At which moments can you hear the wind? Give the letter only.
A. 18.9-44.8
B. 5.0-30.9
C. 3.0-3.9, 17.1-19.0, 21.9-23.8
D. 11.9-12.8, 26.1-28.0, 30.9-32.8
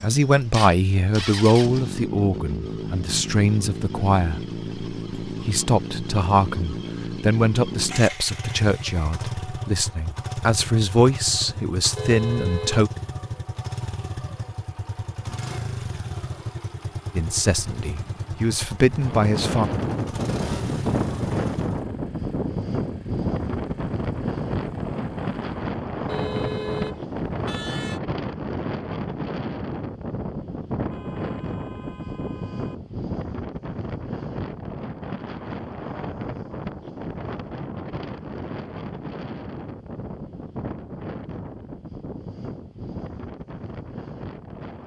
A.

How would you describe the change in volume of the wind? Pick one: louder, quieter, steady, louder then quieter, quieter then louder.
quieter.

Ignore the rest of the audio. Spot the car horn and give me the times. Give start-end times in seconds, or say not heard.
11.9-12.8, 26.1-28.0, 30.9-32.8.